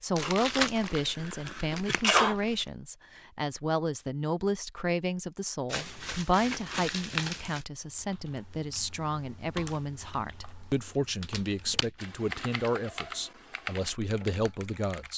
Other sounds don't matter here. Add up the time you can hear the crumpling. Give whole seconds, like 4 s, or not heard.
6 s.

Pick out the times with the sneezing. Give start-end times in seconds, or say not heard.
0.9-2.4.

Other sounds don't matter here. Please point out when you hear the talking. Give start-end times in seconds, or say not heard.
0.0-15.1.